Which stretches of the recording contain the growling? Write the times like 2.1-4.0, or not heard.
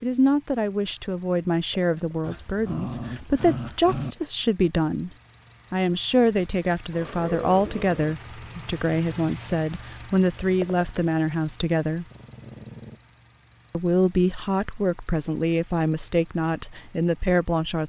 2.2-4.2, 6.9-8.2, 12.1-13.0.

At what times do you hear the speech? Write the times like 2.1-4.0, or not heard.
0.0-5.1, 5.7-12.1, 13.7-17.8.